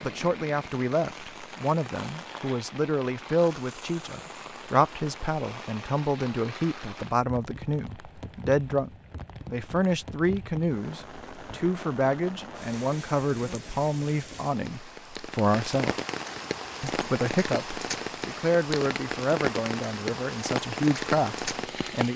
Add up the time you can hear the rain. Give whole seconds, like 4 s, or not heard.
22 s.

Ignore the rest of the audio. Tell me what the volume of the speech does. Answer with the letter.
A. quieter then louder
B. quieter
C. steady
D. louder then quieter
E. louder
C.